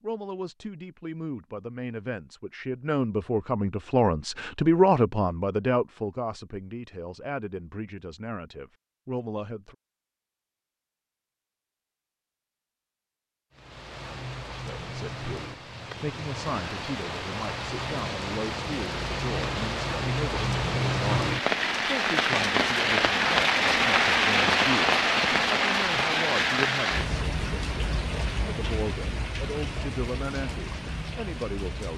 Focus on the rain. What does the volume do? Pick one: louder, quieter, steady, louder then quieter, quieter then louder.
louder then quieter.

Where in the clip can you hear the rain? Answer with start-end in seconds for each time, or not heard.
13.5-31.9.